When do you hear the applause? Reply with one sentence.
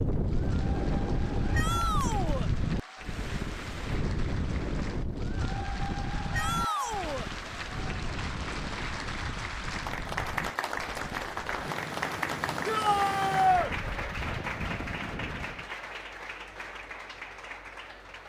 You can hear the applause from 0.1 to 18.2 s.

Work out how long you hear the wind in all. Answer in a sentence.
You can hear the wind for 16 seconds altogether.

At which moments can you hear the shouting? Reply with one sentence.
You can hear the shouting from 1.5 to 2.5 s, from 6.3 to 7.3 s and from 12.7 to 13.7 s.